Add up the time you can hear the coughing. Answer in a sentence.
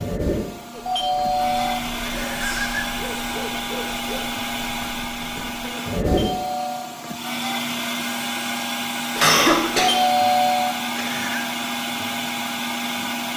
The coughing can be heard for 2 seconds in total.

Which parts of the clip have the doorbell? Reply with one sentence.
The doorbell can be heard from 0.8 to 2.9 s, from 6.0 to 6.9 s and from 9.8 to 11.4 s.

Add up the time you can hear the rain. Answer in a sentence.
The rain can't be heard in this clip.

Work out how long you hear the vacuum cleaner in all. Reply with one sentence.
The vacuum cleaner can be heard for 13 seconds in total.